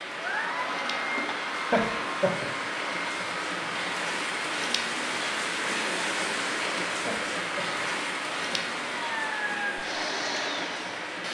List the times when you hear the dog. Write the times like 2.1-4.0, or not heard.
not heard.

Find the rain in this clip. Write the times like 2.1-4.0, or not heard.
0.0-11.2.